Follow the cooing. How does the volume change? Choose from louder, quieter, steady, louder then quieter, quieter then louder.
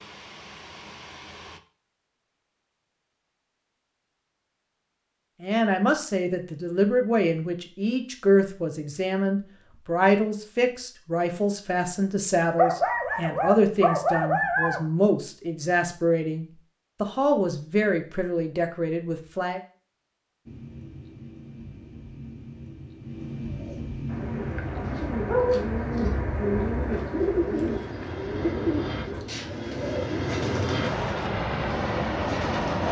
louder then quieter.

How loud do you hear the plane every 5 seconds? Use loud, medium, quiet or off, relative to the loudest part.
quiet, off, off, off, medium, medium, loud.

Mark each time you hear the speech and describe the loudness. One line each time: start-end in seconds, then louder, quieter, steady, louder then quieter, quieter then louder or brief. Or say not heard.
5.4-19.6 steady.